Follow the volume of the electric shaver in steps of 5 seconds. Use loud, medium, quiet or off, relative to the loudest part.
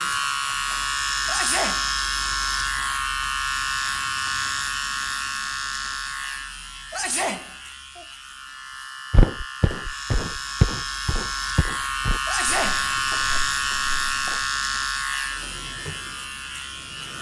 loud, medium, loud, medium.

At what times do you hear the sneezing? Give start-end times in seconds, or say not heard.
1.2-1.9, 6.9-8.1, 12.2-13.3.